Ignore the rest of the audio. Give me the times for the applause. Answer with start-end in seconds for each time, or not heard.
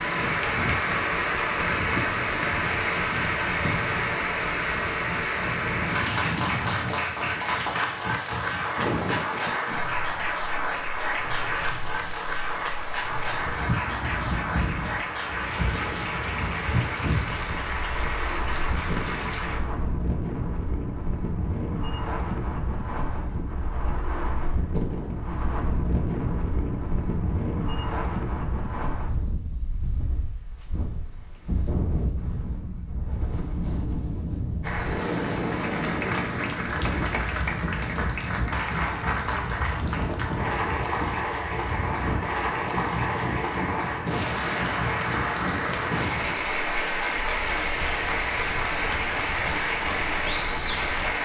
0.0-19.6, 34.6-51.2.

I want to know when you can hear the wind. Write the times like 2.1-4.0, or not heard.
0.0-51.2.